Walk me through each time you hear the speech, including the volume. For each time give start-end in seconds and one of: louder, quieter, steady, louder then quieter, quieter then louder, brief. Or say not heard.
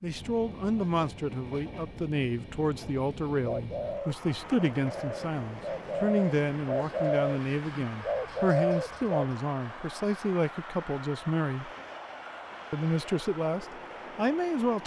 0.0-11.7 steady
12.7-14.8 brief.